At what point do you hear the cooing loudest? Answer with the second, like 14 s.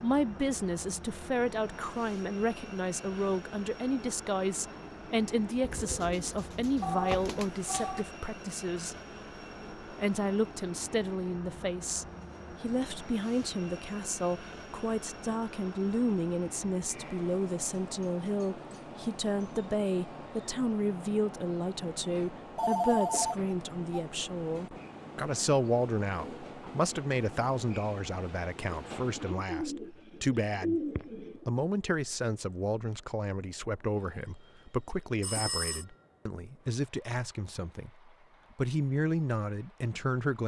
31 s.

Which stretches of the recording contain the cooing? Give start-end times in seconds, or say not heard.
5.6-7.5, 28.7-31.4.